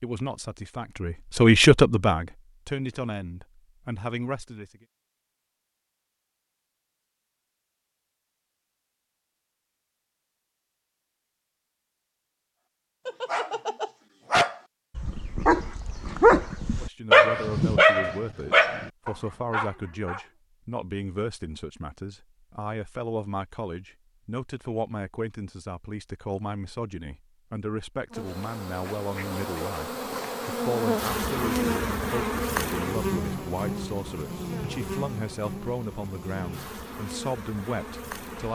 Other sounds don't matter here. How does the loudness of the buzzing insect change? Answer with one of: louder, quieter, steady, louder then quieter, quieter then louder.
louder then quieter.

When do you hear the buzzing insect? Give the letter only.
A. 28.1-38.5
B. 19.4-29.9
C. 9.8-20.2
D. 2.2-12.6
A.